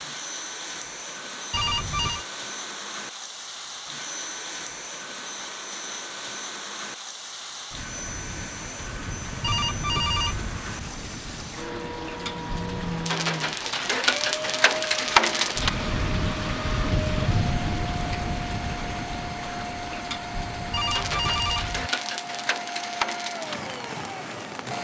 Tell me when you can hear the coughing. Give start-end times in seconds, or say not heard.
not heard.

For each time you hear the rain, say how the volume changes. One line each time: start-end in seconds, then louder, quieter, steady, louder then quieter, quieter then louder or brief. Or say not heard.
0.0-24.7 louder then quieter.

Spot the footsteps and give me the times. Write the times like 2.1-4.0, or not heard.
not heard.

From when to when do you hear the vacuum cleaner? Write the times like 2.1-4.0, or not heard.
0.0-24.7.